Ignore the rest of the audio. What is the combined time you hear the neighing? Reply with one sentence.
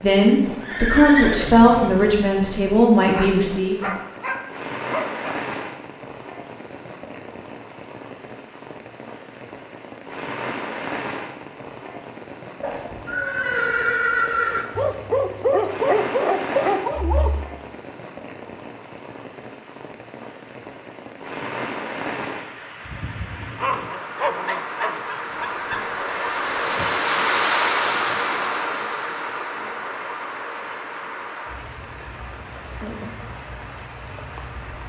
The neighing can be heard for 5 seconds in total.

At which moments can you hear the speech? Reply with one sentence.
The speech can be heard from 0.0 to 3.9 s.